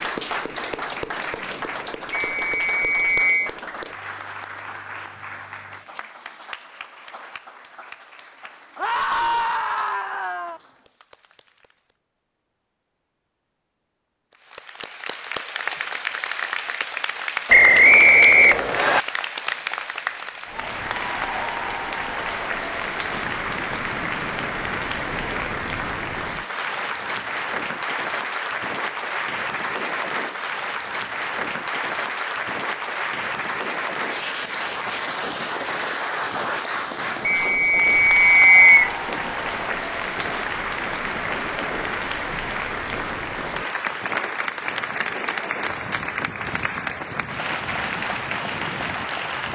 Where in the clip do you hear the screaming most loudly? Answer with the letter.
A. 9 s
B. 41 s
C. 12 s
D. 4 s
A.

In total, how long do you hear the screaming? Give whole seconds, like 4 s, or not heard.
2 s.